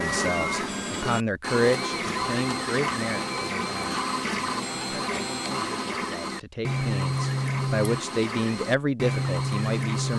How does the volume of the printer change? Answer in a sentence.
The volume of the printer stays about the same.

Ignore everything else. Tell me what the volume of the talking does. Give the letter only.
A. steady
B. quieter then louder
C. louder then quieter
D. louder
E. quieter
B.